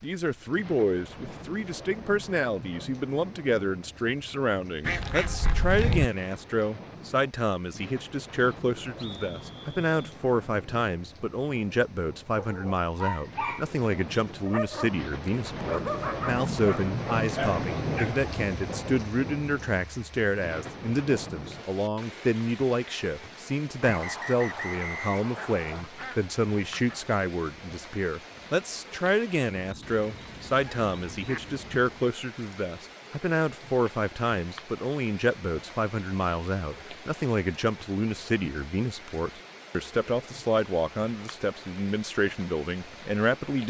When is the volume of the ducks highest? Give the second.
6 s.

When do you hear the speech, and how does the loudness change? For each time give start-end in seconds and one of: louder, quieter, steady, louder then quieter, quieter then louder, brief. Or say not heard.
0.0-43.6 steady.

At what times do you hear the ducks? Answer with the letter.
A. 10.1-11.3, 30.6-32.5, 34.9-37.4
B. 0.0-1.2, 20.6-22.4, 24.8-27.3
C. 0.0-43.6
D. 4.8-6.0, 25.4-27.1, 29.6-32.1
D.